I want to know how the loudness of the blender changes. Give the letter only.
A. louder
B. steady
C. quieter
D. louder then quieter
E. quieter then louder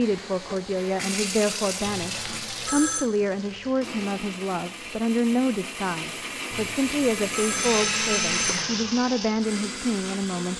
A.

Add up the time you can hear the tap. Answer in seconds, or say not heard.
3 s.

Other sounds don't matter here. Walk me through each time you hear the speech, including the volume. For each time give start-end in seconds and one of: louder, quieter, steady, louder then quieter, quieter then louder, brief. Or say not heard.
0.0-10.5 steady.